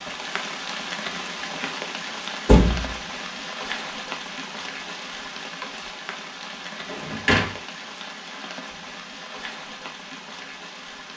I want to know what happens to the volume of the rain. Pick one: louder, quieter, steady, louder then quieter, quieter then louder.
quieter.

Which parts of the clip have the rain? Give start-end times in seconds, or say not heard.
0.0-11.1.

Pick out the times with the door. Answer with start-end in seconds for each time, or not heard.
2.5-2.9, 6.9-7.5.